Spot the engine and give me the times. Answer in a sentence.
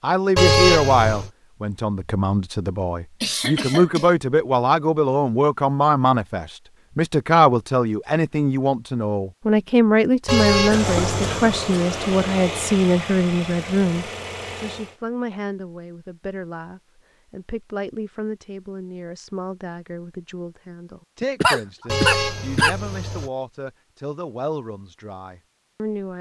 You can hear the engine from 10.6 to 15.0 s.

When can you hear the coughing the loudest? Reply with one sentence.
The volume of the coughing peaks at 22 seconds.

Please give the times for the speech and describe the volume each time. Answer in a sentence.
You can hear the speech from 0.0 to 26.1 s, getting quieter.